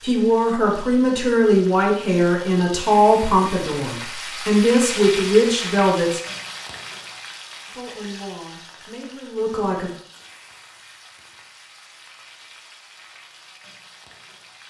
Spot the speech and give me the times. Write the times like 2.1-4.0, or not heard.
0.0-6.2, 7.7-9.9.